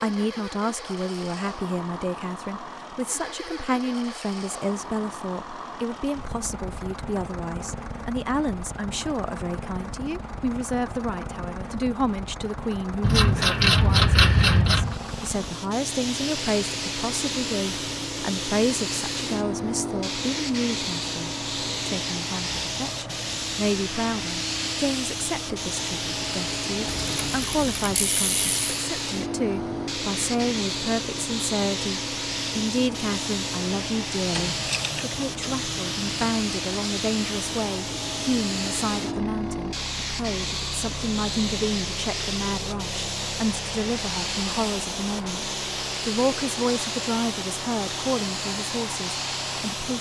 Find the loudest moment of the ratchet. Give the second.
14 s.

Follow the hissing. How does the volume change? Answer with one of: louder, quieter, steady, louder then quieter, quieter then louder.
steady.